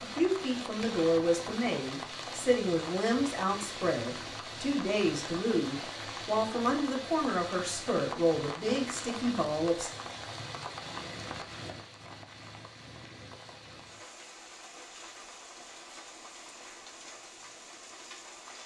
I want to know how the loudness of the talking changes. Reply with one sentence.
The loudness of the talking stays about the same.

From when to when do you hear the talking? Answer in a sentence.
The talking can be heard from 0.0 to 9.9 s.